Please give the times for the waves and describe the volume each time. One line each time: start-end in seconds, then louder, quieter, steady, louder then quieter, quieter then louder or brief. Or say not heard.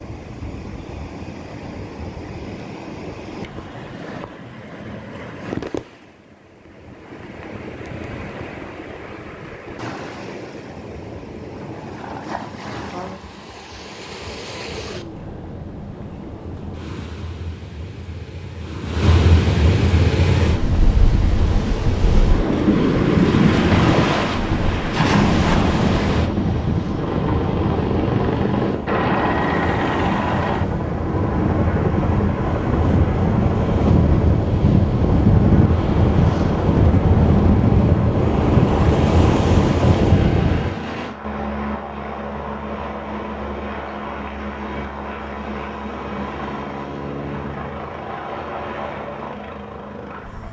0.0-40.8 louder.